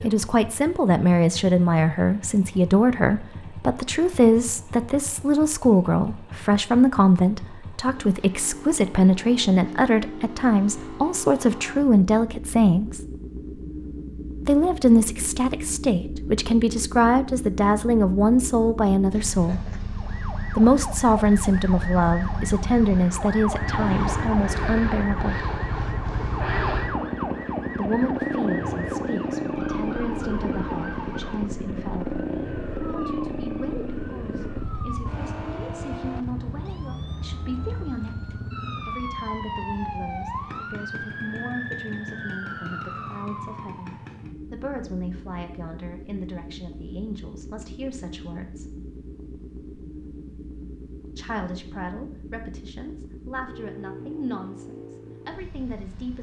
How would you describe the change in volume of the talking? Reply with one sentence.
The loudness of the talking goes down.